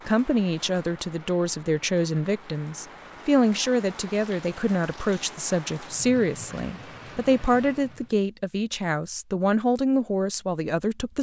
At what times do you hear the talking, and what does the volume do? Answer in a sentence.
You can hear the talking from 0.1 to 11.1 s, at a steady volume.